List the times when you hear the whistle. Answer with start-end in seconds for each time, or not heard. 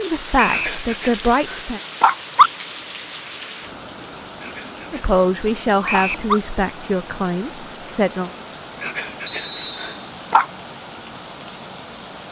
0.3-0.8, 5.8-6.2, 9.2-9.9.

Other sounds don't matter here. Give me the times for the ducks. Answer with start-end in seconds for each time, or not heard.
not heard.